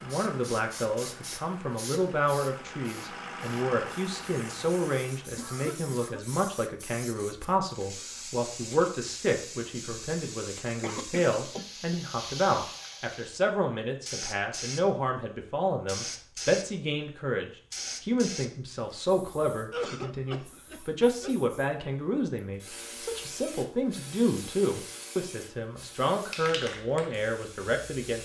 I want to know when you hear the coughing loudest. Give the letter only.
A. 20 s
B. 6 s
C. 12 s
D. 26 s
A.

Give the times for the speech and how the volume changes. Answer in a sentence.
The speech can be heard from 0.0 to 28.1 s, at a steady volume.